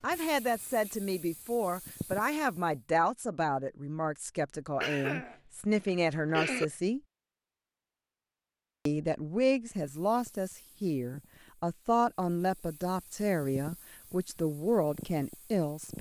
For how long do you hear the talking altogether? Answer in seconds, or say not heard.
14 s.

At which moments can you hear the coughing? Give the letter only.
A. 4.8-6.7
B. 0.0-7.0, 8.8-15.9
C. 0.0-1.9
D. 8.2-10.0
A.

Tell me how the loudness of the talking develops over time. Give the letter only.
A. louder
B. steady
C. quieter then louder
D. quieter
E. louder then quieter
B.